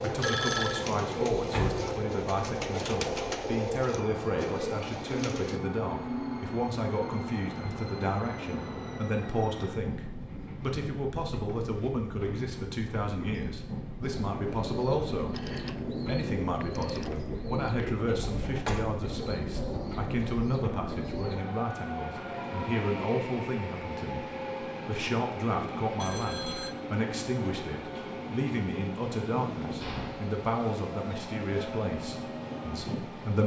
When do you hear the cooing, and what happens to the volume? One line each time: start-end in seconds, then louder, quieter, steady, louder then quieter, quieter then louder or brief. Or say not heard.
0.0-5.6 steady
14.0-21.4 steady.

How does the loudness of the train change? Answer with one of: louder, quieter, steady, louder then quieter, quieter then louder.
steady.